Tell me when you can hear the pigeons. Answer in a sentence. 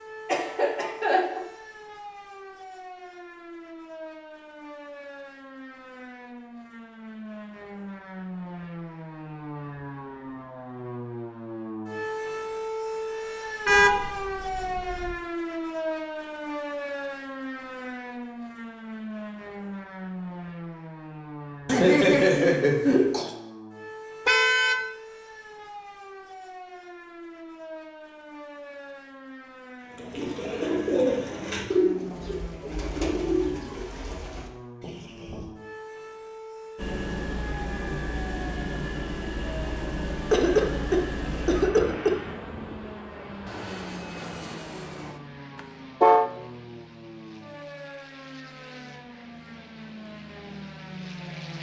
The pigeons can be heard from 29.9 to 35.5 s.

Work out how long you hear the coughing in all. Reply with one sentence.
The coughing can be heard for 5 seconds in total.